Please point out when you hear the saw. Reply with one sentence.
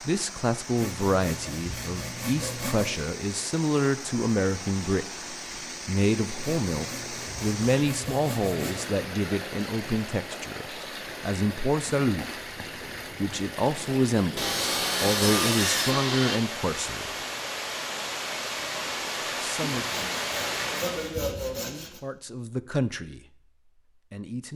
The saw can be heard from 0.8 to 3.0 s, from 6.4 to 8.9 s, from 14.3 to 16.4 s and from 19.6 to 22.0 s.